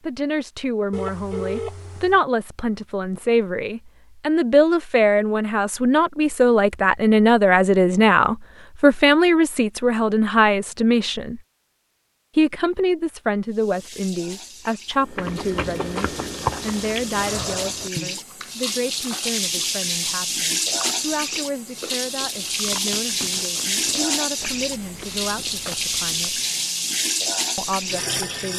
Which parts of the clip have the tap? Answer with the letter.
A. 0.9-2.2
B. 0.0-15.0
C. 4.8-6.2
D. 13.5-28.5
D.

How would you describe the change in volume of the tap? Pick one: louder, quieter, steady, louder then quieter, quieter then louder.
louder.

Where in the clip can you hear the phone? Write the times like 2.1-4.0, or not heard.
0.9-2.2.